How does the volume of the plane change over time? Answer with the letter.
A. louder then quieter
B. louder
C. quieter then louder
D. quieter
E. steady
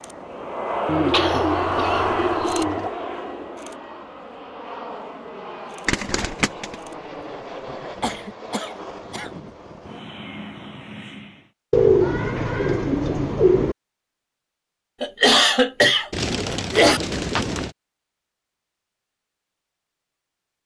D.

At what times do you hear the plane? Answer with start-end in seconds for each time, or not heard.
0.0-11.5.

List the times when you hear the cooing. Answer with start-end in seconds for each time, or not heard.
0.8-2.9, 5.8-6.8, 11.7-13.8, 16.1-17.7.